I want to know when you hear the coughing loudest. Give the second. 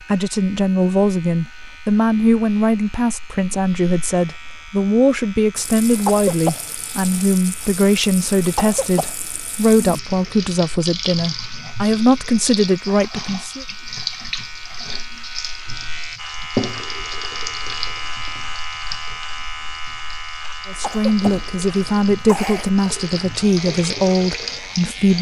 6 s.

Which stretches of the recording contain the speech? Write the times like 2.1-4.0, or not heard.
0.1-13.7, 20.6-25.1.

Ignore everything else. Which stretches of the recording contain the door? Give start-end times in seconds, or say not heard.
not heard.